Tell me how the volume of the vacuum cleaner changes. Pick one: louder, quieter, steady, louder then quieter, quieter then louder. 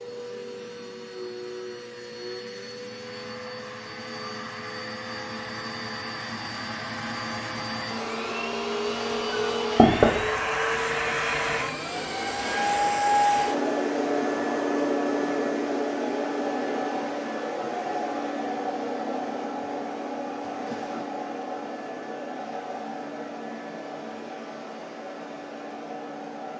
louder then quieter.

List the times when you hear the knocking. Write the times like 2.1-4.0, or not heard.
9.3-10.2.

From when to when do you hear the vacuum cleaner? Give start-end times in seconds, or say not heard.
0.0-26.5.